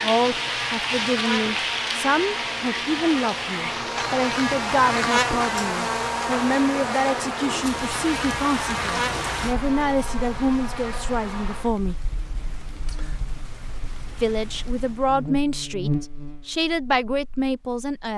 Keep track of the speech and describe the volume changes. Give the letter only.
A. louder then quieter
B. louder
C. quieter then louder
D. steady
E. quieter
D.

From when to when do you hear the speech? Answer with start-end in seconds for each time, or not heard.
0.0-12.1, 14.2-18.1.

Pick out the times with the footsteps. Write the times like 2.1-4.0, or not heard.
not heard.